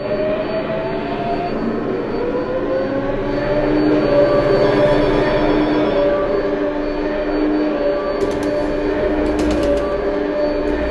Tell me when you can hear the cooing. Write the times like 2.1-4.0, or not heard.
8.2-10.8.